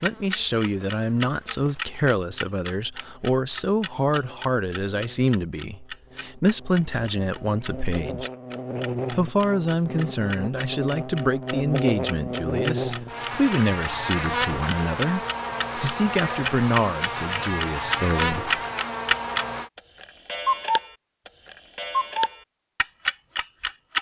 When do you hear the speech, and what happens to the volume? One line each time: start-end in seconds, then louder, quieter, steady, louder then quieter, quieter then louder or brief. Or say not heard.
0.0-8.3 steady
9.1-18.5 steady.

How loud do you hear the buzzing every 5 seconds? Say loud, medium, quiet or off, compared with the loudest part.
quiet, medium, loud, loud, off.